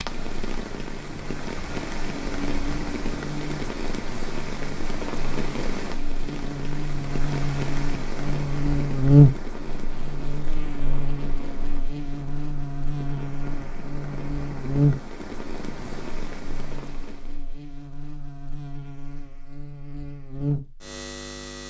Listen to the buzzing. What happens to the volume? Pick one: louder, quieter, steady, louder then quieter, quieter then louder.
louder then quieter.